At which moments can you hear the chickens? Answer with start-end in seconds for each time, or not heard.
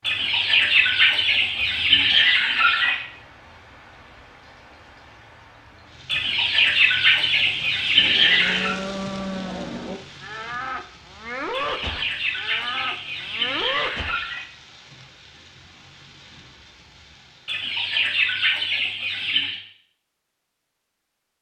0.0-3.0, 6.0-8.8, 11.5-14.4, 17.4-19.6.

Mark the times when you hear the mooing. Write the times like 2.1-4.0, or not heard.
8.0-14.2.